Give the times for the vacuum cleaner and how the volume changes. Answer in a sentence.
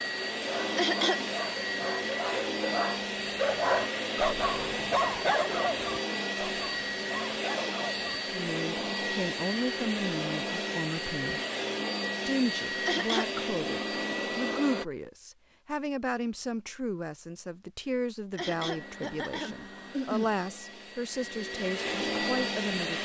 The vacuum cleaner can be heard from 0.0 to 14.8 s, at a steady volume; and from 18.5 to 23.0 s, getting louder.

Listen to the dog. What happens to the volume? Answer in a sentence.
The loudness of the dog goes up, then down.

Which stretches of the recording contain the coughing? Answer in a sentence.
You can hear the coughing from 0.7 to 1.2 s, from 12.8 to 13.3 s and from 18.3 to 20.3 s.